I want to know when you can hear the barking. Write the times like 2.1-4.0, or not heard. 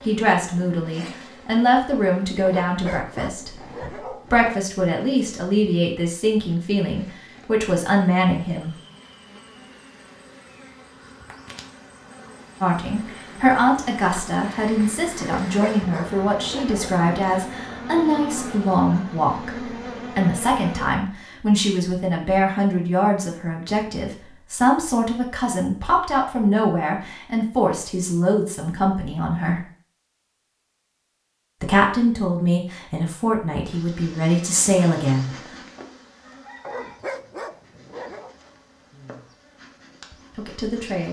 2.5-4.5, 15.2-16.9, 36.6-38.4.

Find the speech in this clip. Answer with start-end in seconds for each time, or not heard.
0.0-8.8, 12.6-29.6, 31.6-35.3, 38.9-39.4, 40.3-41.0.